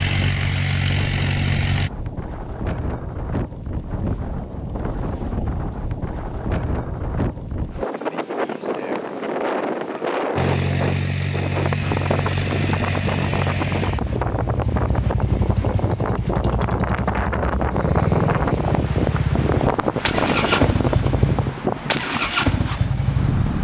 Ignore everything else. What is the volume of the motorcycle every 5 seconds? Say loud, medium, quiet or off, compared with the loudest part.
loud, off, loud, loud, loud.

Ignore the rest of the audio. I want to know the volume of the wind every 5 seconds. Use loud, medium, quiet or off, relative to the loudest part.
medium, loud, loud, loud, loud.